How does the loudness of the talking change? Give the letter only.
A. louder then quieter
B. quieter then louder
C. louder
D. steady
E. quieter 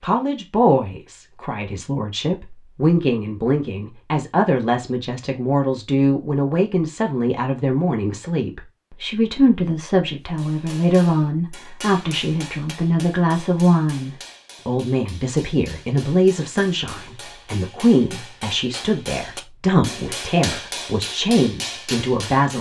D.